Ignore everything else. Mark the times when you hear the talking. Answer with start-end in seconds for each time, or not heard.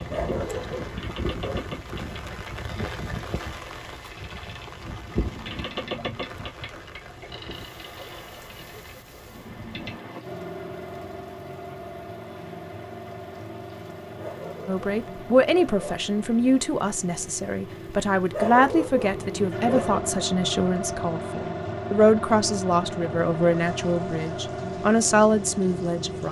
14.7-26.2.